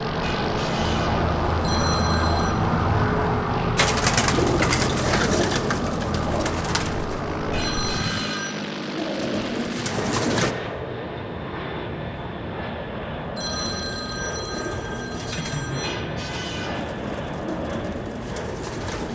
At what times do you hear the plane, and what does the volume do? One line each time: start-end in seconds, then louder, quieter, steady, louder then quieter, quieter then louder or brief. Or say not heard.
0.0-19.0 steady.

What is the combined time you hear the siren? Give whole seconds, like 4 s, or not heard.
8 s.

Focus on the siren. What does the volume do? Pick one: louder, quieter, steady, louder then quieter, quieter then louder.
quieter.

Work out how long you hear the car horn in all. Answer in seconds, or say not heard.
3 s.